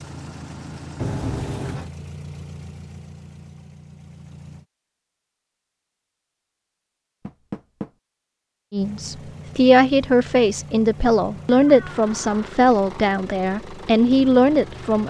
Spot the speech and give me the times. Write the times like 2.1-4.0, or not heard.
8.7-15.0.